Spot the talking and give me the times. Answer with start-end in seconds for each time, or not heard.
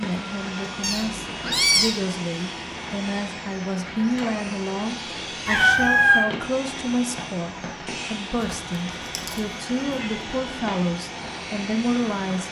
0.0-12.4.